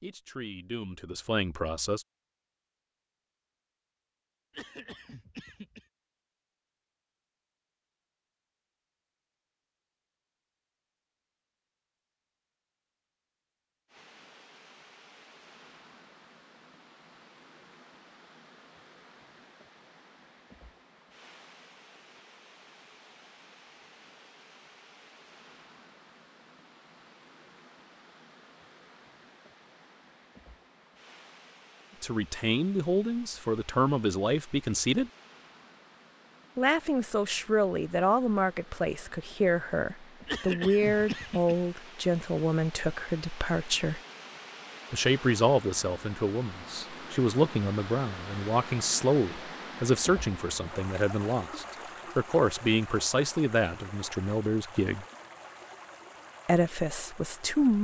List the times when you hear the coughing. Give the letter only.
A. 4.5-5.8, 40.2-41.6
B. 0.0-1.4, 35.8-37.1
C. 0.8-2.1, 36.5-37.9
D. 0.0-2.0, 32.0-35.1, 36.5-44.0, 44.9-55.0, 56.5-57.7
A.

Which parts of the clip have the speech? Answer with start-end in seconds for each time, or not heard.
0.0-2.0, 32.0-35.1, 36.5-44.0, 44.9-55.0, 56.5-57.7.